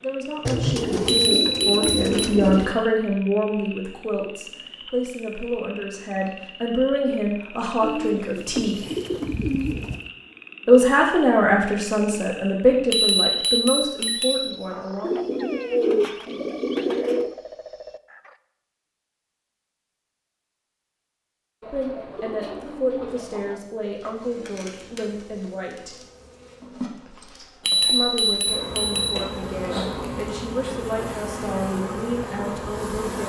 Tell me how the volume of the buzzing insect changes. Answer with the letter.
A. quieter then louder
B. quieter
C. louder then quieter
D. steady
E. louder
E.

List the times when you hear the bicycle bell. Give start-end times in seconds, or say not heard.
1.1-2.3, 12.9-14.6, 27.6-29.3.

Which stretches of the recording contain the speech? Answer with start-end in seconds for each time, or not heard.
0.0-8.8, 10.7-15.1, 21.7-25.9, 27.8-33.2.